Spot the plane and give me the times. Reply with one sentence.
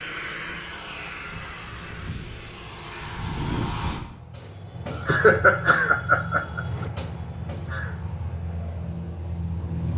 You can hear the plane from 0.0 to 9.9 s.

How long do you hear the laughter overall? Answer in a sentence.
The laughter can be heard for 2 seconds in total.